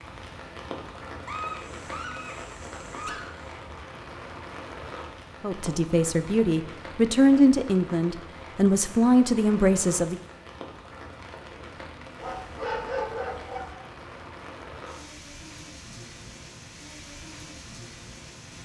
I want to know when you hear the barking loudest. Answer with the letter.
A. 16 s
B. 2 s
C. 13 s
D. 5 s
C.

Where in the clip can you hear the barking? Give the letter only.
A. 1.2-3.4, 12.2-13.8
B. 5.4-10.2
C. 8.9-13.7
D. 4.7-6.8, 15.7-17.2
A.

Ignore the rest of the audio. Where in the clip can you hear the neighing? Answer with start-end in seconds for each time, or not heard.
not heard.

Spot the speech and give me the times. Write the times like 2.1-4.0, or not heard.
5.4-10.2.